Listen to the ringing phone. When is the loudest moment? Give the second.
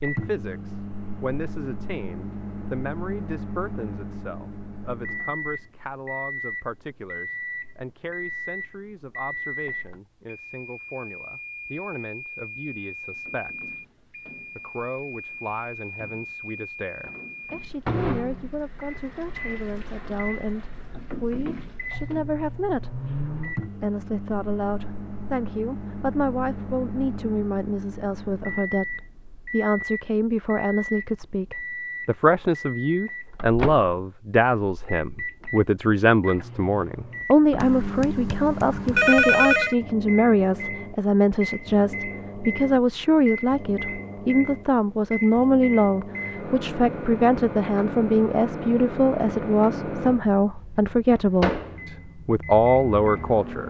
39 s.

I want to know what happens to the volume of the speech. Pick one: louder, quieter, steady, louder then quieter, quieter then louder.
louder.